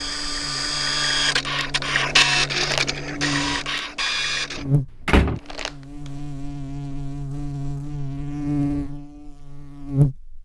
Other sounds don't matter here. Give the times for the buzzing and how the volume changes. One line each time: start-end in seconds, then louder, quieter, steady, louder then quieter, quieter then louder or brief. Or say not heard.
0.0-10.3 louder.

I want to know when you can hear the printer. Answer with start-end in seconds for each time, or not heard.
0.0-4.7.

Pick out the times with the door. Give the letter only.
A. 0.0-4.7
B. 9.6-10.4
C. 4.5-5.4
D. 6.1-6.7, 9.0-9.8
C.